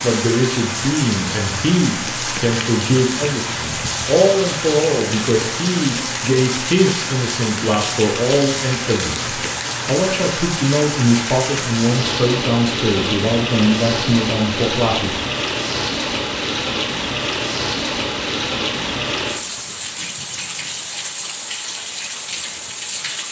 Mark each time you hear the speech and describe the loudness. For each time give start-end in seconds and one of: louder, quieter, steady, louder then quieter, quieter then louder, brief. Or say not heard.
0.0-15.2 steady.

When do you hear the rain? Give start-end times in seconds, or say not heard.
0.0-23.2.